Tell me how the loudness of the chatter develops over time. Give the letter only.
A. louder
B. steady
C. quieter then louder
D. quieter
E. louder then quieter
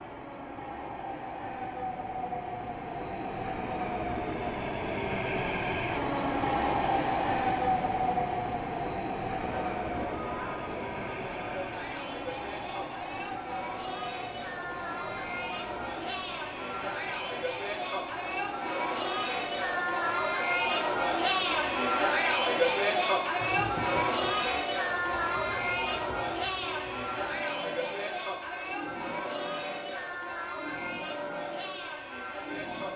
E.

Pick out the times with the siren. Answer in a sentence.
The siren can't be heard in this clip.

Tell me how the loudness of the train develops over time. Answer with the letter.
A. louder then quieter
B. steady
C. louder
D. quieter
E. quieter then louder
D.